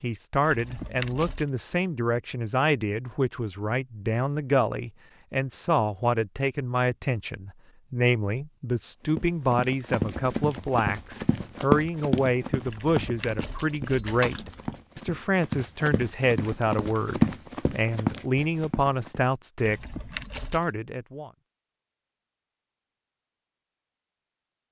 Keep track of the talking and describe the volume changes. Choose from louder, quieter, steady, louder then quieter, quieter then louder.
steady.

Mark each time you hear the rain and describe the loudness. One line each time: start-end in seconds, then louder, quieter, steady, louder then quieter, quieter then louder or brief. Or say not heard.
not heard.